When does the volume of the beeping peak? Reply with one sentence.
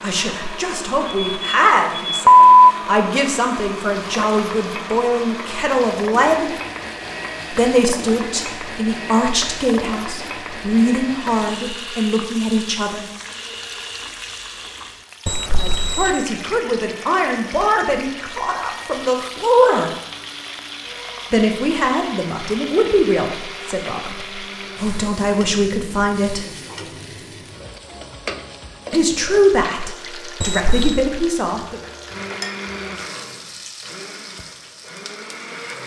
The loudest moment of the beeping is at 2 seconds.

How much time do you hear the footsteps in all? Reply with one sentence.
You can't hear the footsteps here.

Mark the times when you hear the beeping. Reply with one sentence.
You can hear the beeping from 1.1 to 2.5 s, from 15.2 to 16.2 s and from 30.4 to 31.0 s.